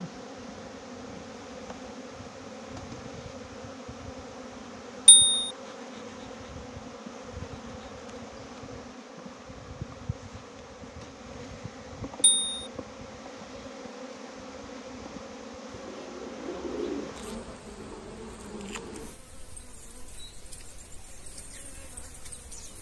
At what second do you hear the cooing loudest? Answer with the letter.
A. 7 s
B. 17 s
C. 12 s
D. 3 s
B.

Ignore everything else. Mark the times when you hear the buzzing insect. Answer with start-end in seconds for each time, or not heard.
0.0-22.7.